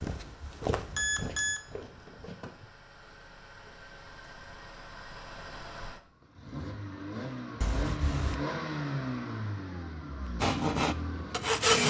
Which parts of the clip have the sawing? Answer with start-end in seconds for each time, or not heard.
10.4-11.8.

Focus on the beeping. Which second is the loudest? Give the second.
1 s.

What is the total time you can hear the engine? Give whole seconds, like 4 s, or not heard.
12 s.